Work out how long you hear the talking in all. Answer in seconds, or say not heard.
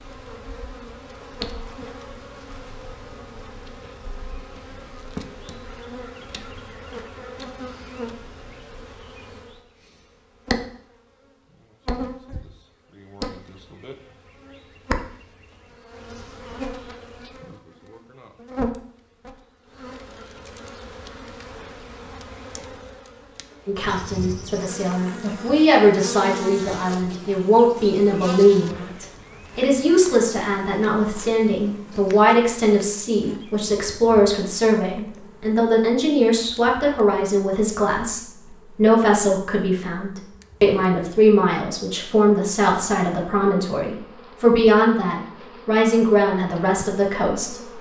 24 s.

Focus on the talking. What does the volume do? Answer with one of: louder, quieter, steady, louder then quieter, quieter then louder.
steady.